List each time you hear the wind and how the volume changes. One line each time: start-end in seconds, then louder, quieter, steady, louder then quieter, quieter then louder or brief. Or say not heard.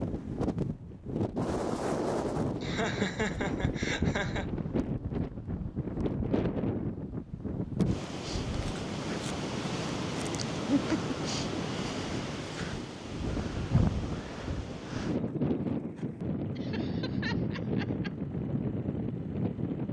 0.0-19.8 steady.